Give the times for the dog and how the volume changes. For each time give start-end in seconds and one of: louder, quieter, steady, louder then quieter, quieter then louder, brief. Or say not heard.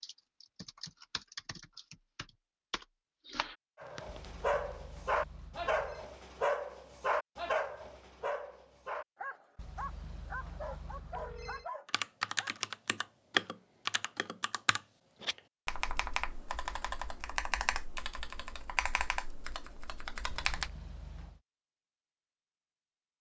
3.8-12.5 quieter.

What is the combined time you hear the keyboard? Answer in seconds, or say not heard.
13 s.